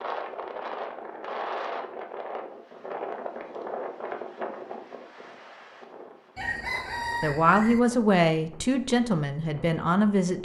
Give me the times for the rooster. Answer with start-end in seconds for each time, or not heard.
6.3-7.8.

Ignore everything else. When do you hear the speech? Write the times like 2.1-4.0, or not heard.
7.2-10.3.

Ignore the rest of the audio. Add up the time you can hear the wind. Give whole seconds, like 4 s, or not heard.
10 s.